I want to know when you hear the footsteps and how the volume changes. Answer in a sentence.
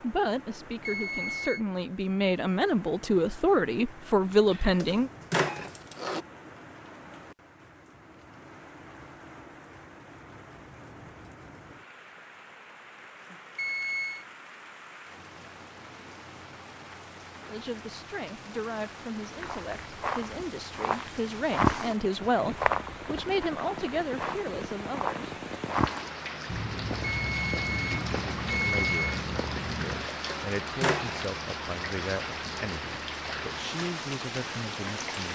The footsteps can be heard from 19.4 to 30.1 s, getting quieter.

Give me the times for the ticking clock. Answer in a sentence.
You can't hear the ticking clock here.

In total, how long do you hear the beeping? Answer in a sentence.
The beeping can be heard for 4 seconds in total.